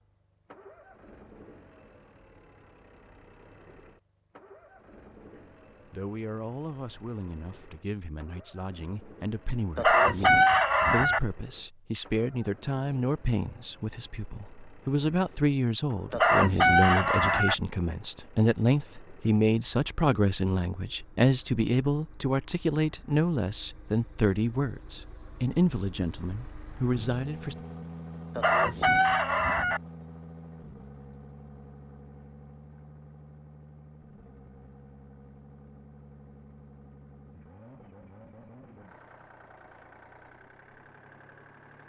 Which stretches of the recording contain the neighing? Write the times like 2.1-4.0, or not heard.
not heard.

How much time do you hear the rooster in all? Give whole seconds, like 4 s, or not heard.
4 s.